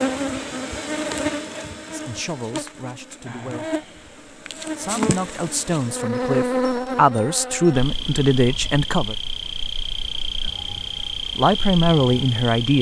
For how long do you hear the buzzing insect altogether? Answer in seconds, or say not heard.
13 s.